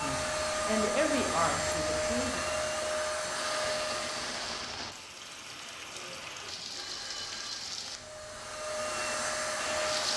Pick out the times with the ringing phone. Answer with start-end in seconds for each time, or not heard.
6.0-7.7.